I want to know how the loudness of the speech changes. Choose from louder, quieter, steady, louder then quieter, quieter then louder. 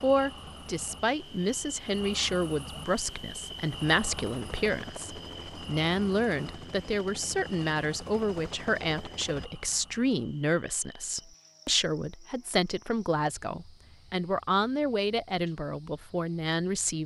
steady.